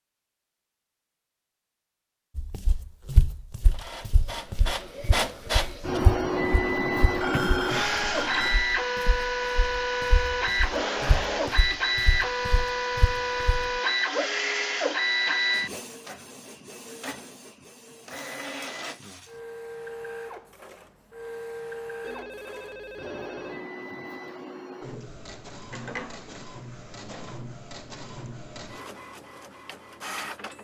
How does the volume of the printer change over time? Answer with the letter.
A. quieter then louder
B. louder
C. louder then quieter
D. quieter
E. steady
D.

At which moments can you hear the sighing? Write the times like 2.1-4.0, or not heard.
7.3-8.1.